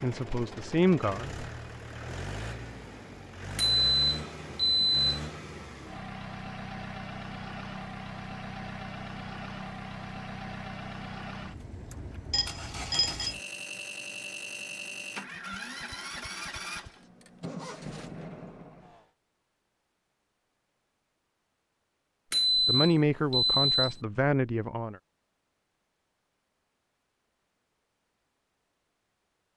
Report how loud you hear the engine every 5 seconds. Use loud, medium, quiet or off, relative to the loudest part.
loud, loud, loud, loud, off, off.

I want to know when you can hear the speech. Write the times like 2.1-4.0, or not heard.
0.0-1.4, 22.6-24.9.